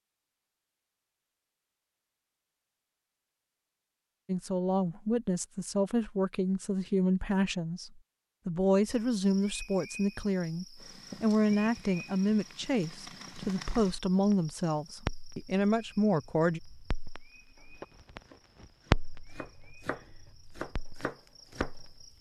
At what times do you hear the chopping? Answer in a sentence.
The chopping can be heard from 17.6 to 21.9 s.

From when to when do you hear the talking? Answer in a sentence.
The talking can be heard from 4.2 to 16.6 s.